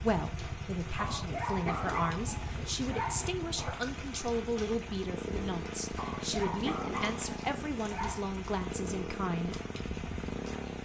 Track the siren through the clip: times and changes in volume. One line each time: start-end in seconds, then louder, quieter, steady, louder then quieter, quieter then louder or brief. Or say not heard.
not heard.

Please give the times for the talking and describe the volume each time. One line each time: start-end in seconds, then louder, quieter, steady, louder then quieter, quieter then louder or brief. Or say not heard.
0.0-9.6 steady.